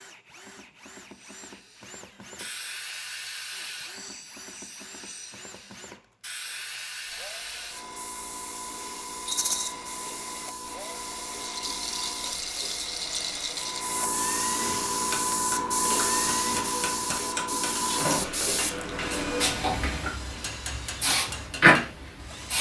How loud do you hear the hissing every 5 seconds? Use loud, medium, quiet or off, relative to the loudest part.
quiet, quiet, medium, loud, loud.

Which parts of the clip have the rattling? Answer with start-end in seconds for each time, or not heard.
9.2-9.7, 11.4-13.8.